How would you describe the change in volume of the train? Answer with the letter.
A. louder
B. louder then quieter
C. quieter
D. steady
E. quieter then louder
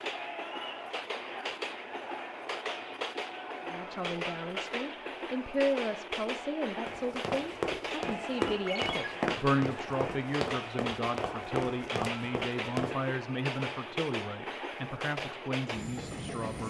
D.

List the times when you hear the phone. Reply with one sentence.
The phone can be heard from 8.7 to 9.1 s.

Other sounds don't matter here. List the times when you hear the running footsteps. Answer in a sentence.
You can hear the running footsteps from 6.8 to 12.9 s.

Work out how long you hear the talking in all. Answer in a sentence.
You can hear the talking for 13 seconds altogether.